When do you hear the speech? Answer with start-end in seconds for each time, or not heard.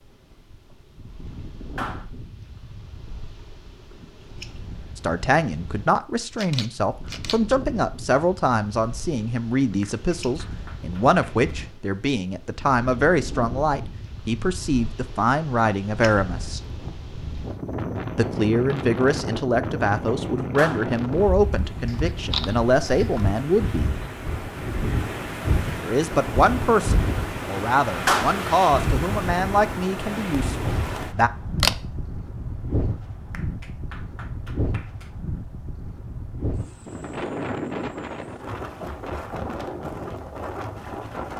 5.0-16.6, 18.1-23.9, 25.8-31.3.